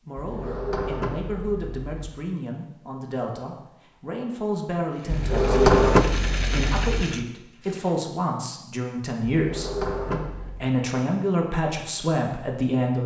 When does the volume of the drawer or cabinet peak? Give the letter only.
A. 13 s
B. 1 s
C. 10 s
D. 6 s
D.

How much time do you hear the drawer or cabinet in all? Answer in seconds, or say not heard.
5 s.